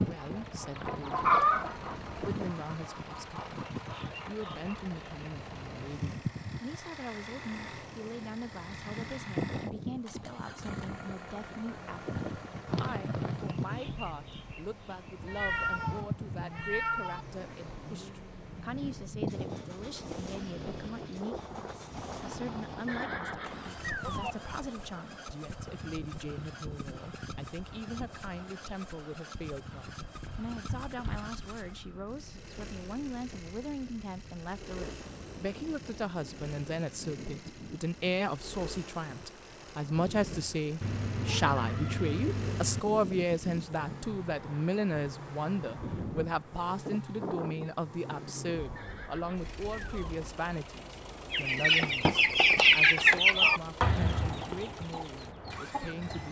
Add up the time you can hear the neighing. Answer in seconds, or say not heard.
4 s.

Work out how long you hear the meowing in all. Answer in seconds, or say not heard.
5 s.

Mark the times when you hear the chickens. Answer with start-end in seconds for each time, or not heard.
0.0-5.0, 51.3-56.2.